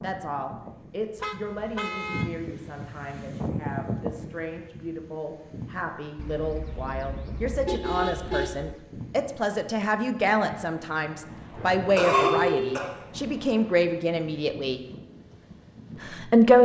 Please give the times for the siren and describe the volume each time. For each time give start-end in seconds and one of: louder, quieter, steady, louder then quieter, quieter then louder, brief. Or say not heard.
not heard.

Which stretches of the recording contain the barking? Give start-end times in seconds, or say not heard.
not heard.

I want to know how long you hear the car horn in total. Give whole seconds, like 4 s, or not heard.
5 s.